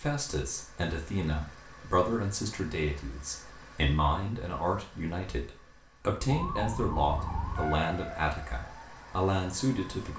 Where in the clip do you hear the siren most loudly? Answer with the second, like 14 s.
7 s.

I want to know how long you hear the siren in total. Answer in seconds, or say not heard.
4 s.